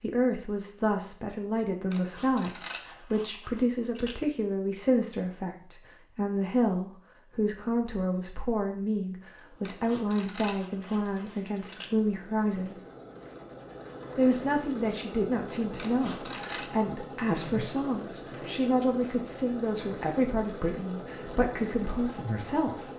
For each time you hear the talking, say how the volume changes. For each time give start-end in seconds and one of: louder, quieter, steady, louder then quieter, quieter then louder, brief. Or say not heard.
0.0-12.8 steady
14.2-22.9 steady.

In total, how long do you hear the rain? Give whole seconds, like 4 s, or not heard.
not heard.